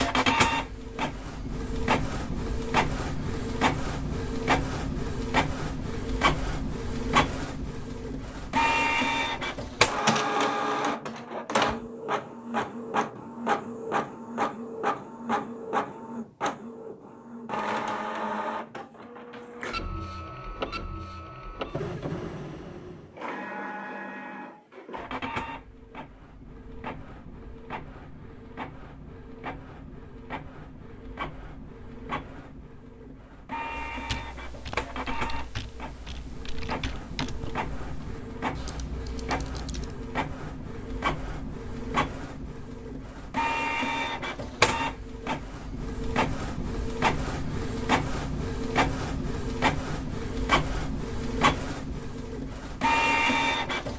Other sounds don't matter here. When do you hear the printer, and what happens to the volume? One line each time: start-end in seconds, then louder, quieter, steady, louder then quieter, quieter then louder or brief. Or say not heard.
0.0-53.9 quieter then louder.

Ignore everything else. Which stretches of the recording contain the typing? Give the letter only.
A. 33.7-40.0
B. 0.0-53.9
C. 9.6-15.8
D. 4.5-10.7
A.